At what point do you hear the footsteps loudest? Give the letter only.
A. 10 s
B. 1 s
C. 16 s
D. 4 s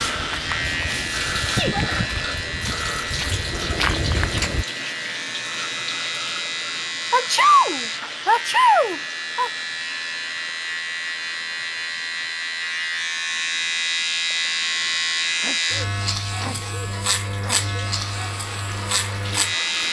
D.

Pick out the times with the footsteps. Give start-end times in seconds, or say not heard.
0.0-4.7.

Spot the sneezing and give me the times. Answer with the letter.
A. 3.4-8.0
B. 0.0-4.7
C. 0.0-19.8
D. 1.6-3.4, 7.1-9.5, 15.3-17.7
D.